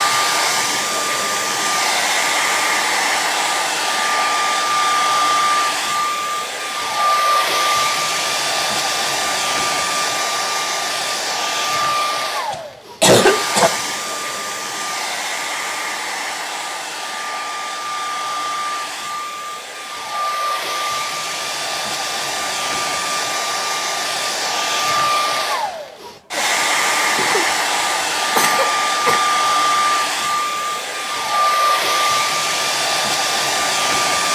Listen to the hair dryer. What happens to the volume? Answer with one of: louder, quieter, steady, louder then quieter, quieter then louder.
quieter then louder.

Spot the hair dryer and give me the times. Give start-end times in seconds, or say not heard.
0.0-34.3.